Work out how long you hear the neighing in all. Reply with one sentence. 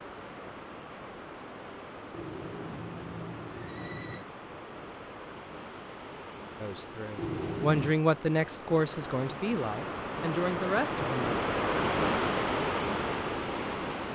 The neighing can be heard for 3 seconds in total.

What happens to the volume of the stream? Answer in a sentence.
The loudness of the stream goes up.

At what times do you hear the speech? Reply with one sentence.
The speech can be heard from 6.6 to 11.4 s.